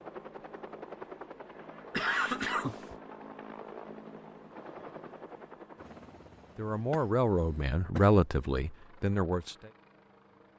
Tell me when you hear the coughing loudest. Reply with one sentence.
The loudest moment of the coughing is at 2 seconds.